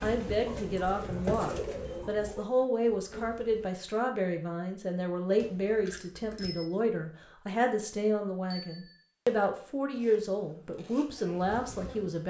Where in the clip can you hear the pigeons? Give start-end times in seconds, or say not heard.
0.4-2.5.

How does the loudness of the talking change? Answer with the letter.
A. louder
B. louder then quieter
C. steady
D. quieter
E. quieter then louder
C.